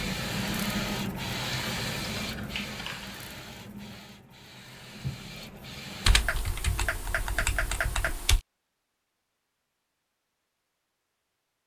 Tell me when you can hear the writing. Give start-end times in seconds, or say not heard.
not heard.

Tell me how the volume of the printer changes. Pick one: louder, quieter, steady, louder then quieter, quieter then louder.
quieter then louder.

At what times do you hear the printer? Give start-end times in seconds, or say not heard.
0.0-6.2.